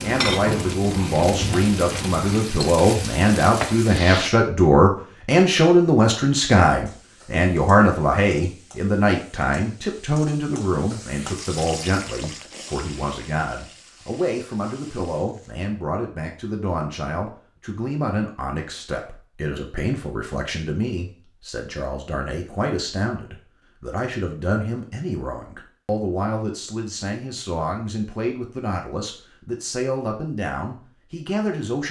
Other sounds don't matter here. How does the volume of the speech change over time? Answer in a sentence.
The loudness of the speech goes down.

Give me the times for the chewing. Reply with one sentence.
You can hear the chewing from 0.0 to 2.4 s.